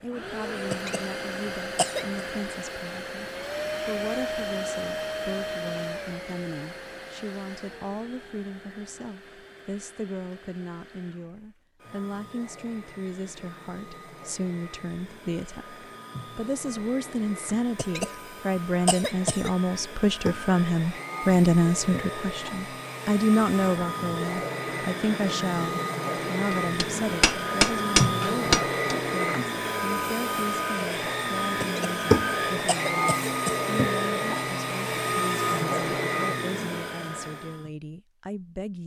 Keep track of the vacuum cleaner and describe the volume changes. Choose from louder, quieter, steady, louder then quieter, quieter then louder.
quieter then louder.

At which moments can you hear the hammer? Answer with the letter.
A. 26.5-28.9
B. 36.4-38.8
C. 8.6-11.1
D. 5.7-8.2
A.